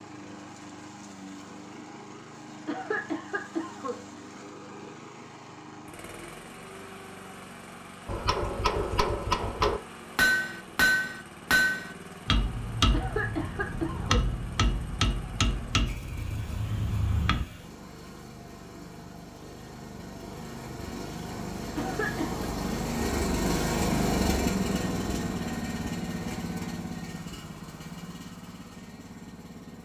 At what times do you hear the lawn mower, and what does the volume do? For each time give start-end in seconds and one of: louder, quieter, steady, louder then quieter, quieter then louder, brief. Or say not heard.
0.0-29.8 louder.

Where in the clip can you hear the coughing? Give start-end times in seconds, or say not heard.
2.6-4.0, 12.9-14.2, 21.8-22.4.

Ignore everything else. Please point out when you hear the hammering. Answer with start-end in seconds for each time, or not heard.
8.1-17.4.